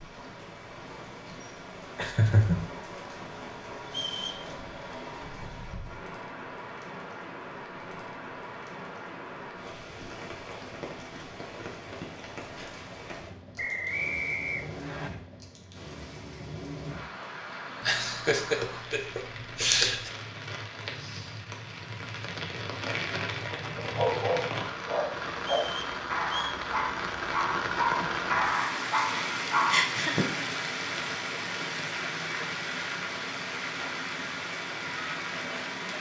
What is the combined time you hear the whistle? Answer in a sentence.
You can hear the whistle for 3 seconds altogether.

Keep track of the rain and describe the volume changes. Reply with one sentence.
The volume of the rain goes up.